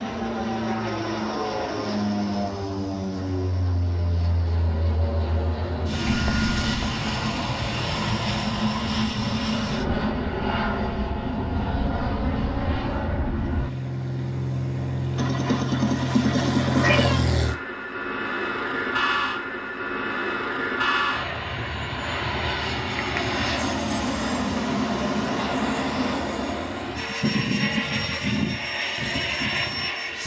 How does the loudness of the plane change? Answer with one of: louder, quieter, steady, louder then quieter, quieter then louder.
steady.